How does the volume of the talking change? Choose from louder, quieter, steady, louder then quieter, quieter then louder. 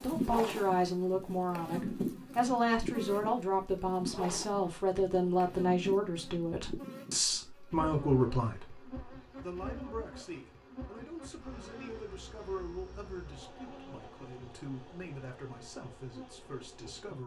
quieter.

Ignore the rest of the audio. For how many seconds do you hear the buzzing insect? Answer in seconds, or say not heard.
17 s.